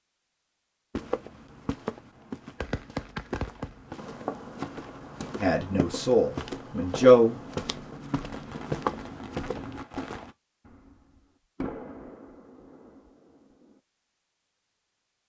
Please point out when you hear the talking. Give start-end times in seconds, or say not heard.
5.4-7.3.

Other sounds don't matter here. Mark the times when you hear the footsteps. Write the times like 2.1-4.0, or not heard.
0.9-10.3.